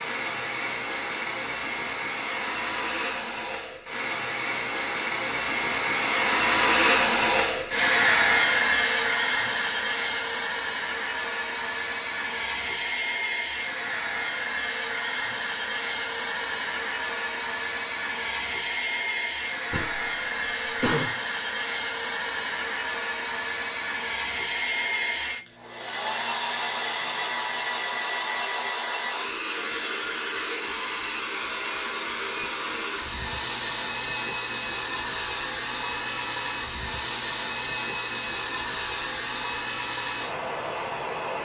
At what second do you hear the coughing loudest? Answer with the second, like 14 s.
21 s.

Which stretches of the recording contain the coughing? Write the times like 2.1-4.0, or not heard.
19.7-21.1.